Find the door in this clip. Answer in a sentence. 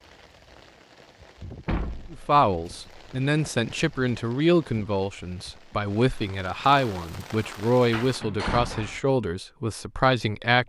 The door can be heard from 1.6 to 2.9 s and from 7.9 to 9.0 s.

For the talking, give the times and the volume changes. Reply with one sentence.
You can hear the talking from 2.1 to 10.6 s, at a steady volume.